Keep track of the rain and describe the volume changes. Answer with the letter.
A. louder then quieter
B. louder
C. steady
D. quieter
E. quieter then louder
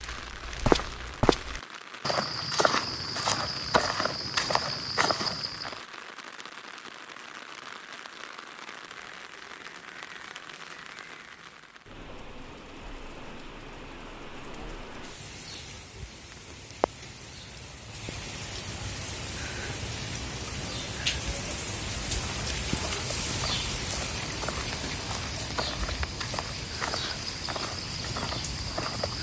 B.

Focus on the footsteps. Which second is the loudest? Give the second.
1 s.